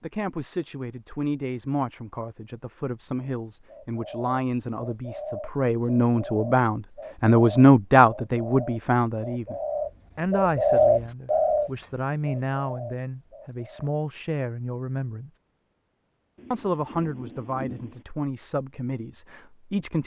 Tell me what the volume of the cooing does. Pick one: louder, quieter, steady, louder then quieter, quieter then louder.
louder then quieter.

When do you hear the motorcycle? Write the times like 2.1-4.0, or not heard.
not heard.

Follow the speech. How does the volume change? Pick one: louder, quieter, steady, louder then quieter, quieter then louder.
louder then quieter.